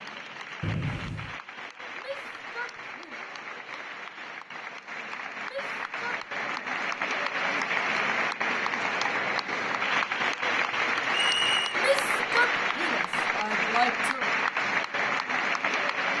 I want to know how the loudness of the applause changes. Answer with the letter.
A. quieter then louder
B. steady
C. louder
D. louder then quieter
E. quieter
C.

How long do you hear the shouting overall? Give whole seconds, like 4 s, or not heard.
5 s.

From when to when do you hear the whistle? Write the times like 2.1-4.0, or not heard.
0.6-1.4, 11.1-11.8.